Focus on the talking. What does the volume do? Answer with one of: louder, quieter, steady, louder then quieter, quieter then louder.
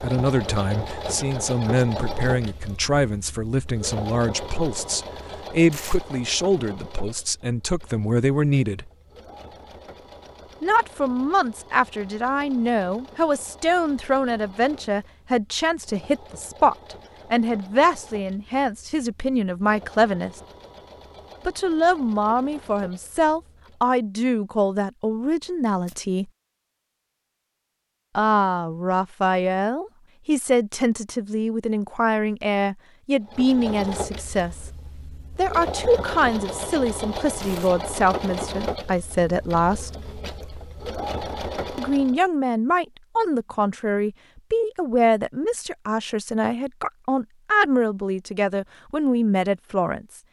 steady.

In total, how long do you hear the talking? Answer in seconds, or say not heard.
43 s.